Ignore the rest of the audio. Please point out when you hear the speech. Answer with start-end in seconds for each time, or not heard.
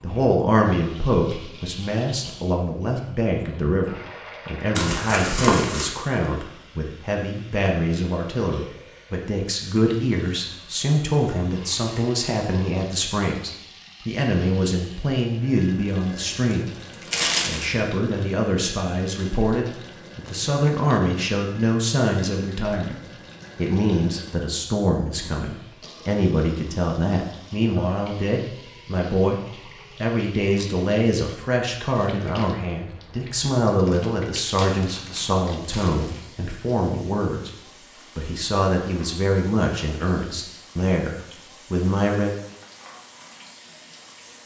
0.0-42.4.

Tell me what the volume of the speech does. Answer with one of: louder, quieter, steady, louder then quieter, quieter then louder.
steady.